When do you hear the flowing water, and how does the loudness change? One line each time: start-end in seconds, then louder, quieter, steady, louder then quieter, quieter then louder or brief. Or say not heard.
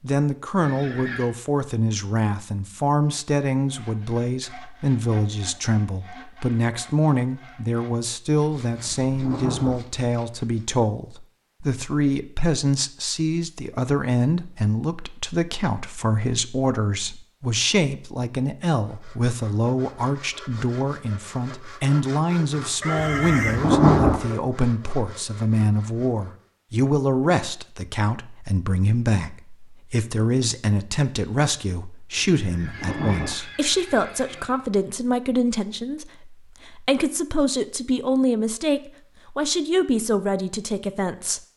not heard.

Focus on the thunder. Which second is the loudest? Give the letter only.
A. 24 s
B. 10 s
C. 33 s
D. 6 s
A.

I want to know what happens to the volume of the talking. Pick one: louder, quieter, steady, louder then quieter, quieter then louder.
steady.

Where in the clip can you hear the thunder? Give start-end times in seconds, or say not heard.
8.7-9.8, 22.9-24.2, 32.1-33.4.